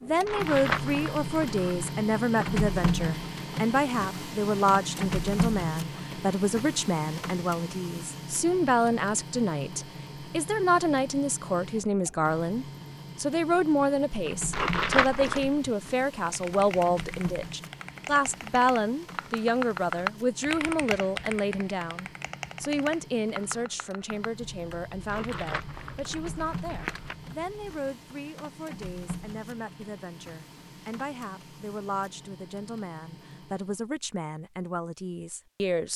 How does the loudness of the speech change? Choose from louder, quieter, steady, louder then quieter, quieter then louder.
quieter.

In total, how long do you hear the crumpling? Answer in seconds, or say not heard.
5 s.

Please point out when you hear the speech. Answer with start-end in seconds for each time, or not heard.
0.0-35.9.